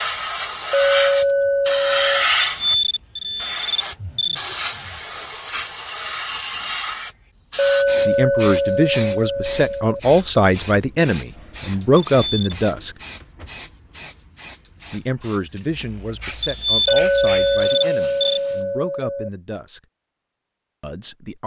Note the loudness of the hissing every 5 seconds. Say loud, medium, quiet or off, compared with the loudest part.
loud, medium, medium, quiet, off.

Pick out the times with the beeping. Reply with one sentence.
You can hear the beeping from 2.4 to 4.3 s, from 12.2 to 12.6 s and from 16.4 to 18.4 s.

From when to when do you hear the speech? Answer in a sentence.
You can hear the speech from 8.1 to 12.9 s, from 14.9 to 19.8 s and from 20.8 to 21.4 s.